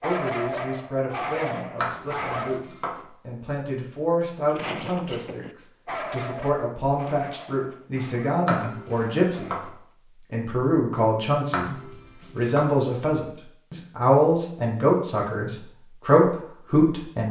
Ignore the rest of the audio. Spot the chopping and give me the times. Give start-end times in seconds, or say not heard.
1.8-3.0, 8.4-9.7, 11.5-12.8.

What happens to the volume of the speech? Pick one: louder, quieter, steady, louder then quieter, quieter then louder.
louder.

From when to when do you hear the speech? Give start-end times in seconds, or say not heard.
0.0-17.2.